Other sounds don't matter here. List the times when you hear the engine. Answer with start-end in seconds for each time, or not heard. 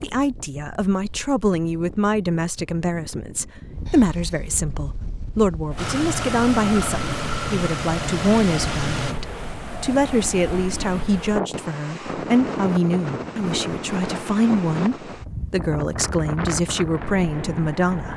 5.8-9.2.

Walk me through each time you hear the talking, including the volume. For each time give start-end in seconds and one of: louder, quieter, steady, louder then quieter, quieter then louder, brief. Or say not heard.
0.0-18.1 steady.